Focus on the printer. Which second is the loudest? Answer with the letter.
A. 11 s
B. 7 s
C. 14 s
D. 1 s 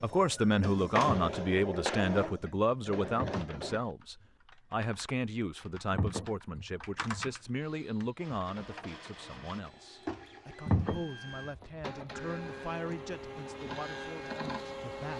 D.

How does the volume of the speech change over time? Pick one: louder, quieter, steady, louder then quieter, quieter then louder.
quieter.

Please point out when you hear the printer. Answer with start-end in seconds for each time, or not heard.
0.0-4.0, 8.2-15.1.